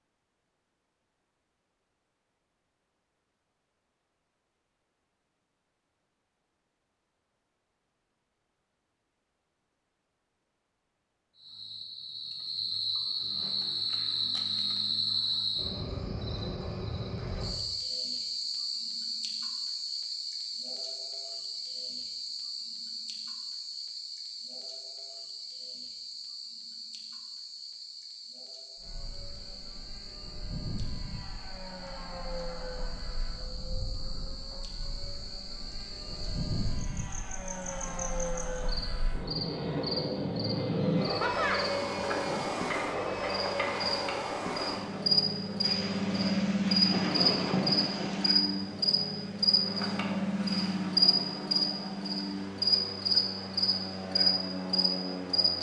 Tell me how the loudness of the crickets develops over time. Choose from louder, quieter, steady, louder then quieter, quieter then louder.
quieter then louder.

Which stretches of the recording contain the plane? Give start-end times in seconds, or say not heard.
28.8-55.5.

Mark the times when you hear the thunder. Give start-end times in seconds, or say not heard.
45.6-48.4.